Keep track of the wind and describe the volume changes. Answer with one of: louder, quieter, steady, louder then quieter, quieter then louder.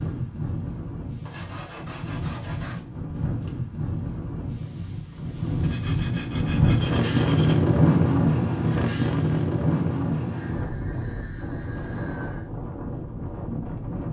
louder then quieter.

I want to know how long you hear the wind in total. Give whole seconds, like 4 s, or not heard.
14 s.